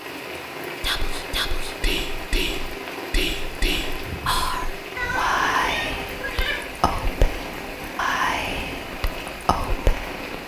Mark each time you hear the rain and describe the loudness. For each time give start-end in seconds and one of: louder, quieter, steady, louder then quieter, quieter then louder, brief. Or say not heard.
0.0-10.4 steady.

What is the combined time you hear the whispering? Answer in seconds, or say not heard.
9 s.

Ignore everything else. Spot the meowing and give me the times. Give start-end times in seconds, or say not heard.
5.0-6.6.